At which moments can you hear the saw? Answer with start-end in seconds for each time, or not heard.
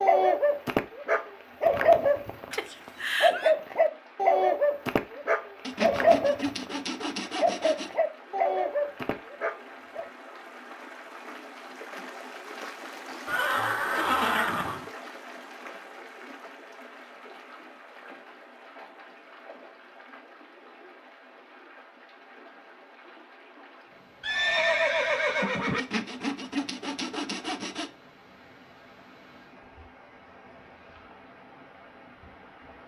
5.6-8.0, 25.8-27.9.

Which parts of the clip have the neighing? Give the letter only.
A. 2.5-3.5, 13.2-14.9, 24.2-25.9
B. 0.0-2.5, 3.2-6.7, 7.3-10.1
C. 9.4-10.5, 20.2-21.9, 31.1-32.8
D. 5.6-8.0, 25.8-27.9
A.